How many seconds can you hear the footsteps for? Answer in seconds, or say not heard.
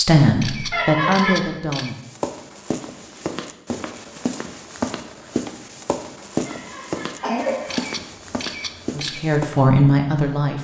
8 s.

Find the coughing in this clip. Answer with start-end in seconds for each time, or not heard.
0.7-1.4, 6.5-7.9.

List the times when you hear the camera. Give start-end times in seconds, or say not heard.
0.4-1.9, 7.7-9.2.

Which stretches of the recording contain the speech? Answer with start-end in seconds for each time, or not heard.
0.0-2.0, 8.9-10.6.